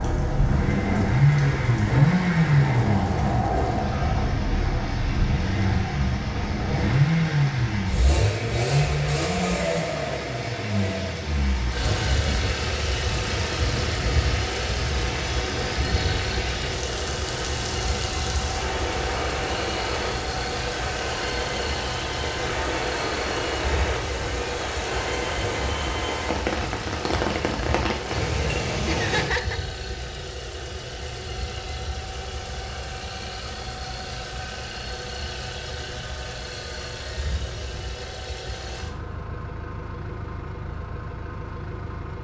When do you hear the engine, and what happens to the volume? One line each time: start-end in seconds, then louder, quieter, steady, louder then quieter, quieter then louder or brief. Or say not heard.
0.0-42.1 quieter.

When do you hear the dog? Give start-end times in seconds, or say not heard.
not heard.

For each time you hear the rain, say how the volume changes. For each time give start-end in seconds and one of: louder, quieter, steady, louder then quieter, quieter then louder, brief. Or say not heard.
0.0-29.3 louder.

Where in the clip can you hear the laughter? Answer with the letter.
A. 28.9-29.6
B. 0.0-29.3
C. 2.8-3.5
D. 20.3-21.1
A.